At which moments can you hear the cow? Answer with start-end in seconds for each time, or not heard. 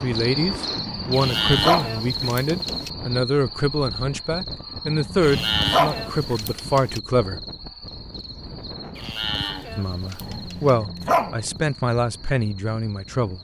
1.1-2.9, 5.2-7.0, 8.9-10.8.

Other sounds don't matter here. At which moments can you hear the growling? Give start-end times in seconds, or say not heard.
0.8-2.3, 4.8-6.4, 10.2-11.4.